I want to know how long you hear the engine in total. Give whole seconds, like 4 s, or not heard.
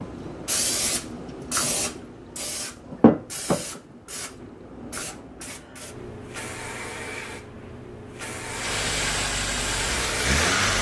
2 s.